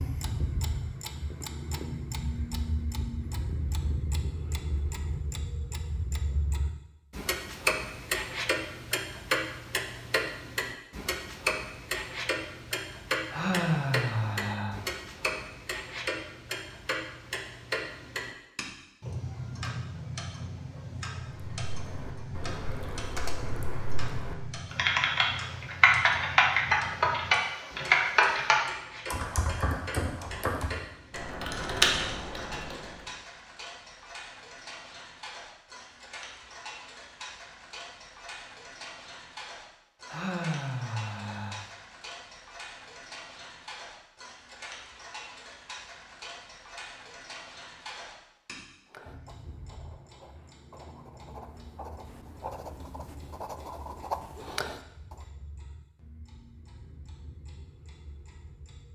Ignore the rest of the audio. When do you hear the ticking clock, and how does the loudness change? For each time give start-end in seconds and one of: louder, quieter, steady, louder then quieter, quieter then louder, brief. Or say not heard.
0.0-58.9 quieter.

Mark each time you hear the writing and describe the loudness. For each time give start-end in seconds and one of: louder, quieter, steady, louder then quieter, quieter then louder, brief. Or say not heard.
48.9-55.2 louder.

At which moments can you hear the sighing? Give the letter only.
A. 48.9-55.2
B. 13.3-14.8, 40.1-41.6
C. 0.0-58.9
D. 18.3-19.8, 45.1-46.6
B.